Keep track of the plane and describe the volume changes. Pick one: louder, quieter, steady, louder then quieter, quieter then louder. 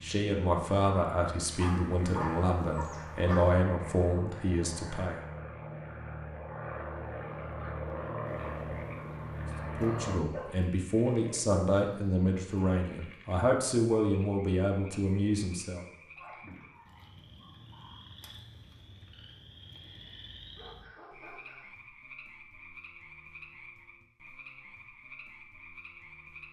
louder.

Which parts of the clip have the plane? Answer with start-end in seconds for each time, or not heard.
0.0-10.2.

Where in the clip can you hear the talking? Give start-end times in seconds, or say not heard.
0.0-5.2, 9.6-15.8.